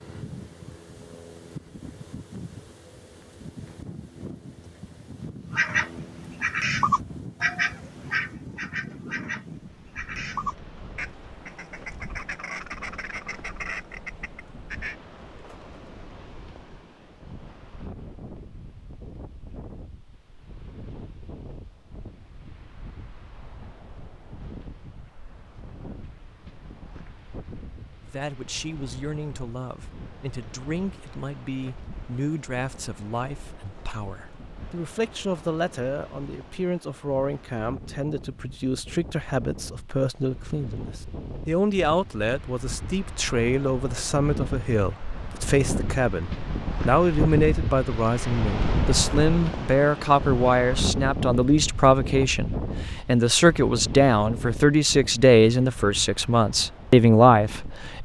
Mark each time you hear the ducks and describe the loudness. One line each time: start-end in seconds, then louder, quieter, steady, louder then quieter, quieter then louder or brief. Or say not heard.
5.5-14.9 quieter.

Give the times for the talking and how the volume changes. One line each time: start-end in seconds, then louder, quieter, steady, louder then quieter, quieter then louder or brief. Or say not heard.
28.0-58.0 louder.